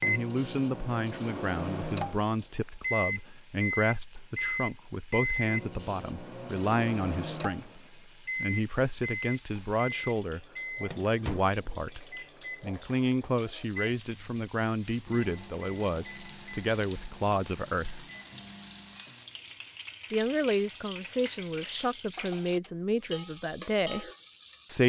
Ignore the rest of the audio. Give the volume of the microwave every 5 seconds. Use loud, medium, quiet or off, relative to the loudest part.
loud, loud, medium, quiet, off.